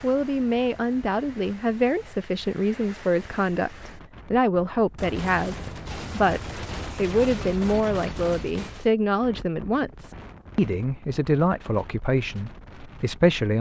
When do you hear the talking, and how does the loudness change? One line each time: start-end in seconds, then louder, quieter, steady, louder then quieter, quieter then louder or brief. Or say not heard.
0.0-13.5 steady.